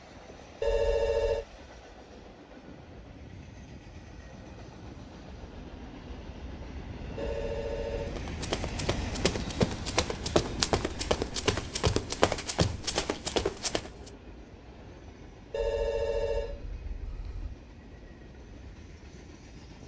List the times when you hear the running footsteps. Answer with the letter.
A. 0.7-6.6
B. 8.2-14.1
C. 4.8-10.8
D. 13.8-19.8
B.